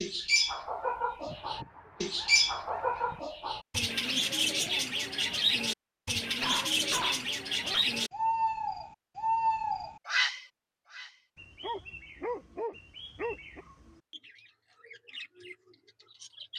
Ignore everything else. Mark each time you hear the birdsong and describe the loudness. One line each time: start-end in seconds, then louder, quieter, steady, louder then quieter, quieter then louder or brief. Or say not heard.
0.0-16.5 quieter.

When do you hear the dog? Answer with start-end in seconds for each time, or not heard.
1.2-3.2, 6.2-7.8, 11.6-13.6.